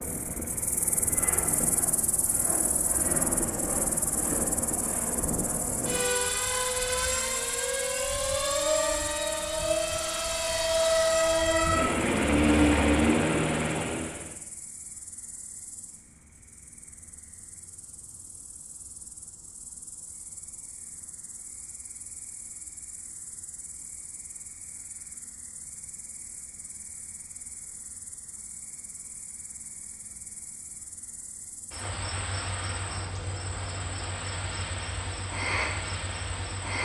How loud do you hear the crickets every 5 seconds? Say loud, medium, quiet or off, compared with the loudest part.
medium, medium, quiet, quiet, quiet, quiet, medium, loud.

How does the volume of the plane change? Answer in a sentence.
The loudness of the plane goes up.